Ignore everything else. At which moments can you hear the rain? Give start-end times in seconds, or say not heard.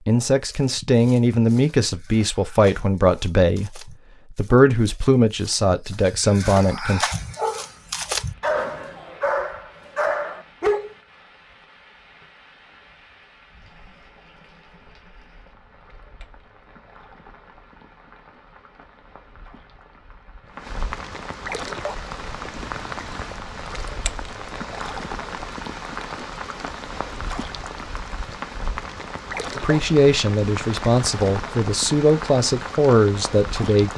7.0-33.9.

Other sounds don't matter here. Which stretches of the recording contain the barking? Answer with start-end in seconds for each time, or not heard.
0.1-10.9.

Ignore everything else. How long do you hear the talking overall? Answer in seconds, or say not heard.
11 s.